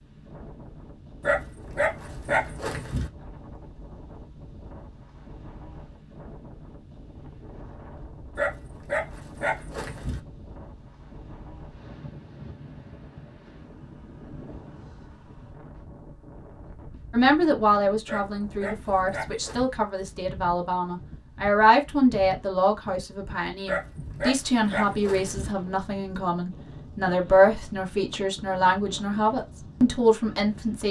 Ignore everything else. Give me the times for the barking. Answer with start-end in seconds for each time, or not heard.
1.2-3.1, 8.3-10.2, 18.1-19.6, 23.6-25.5.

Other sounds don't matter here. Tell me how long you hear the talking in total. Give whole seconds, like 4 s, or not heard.
14 s.